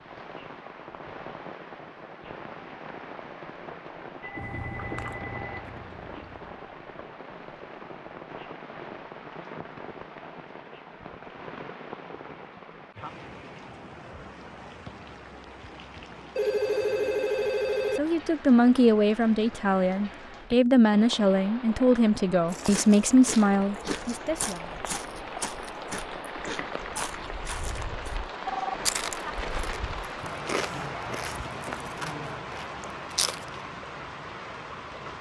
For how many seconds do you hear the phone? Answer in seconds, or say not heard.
4 s.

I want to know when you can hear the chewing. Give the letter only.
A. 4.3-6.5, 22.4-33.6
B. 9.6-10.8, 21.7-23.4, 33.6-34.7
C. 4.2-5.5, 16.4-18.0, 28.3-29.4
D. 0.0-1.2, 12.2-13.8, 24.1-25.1
A.